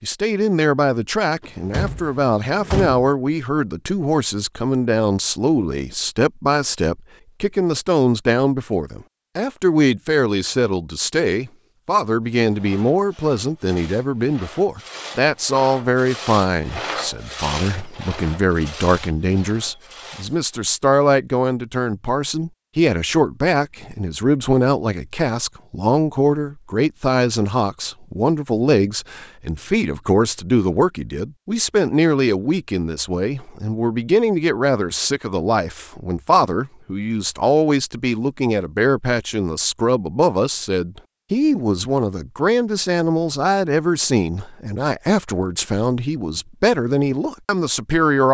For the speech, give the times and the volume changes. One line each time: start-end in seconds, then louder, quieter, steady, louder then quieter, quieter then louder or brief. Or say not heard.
0.0-48.2 steady.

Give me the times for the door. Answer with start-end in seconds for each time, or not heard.
1.4-3.0.